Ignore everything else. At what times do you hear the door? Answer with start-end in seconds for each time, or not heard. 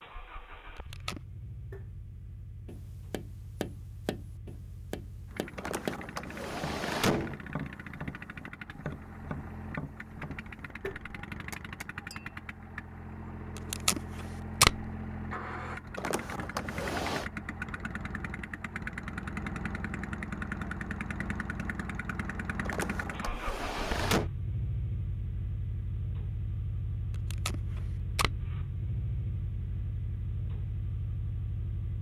5.5-7.4, 15.9-17.2, 22.6-24.3.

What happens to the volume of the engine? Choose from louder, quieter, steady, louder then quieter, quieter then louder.
louder.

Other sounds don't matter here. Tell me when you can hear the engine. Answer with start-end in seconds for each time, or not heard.
0.0-31.9.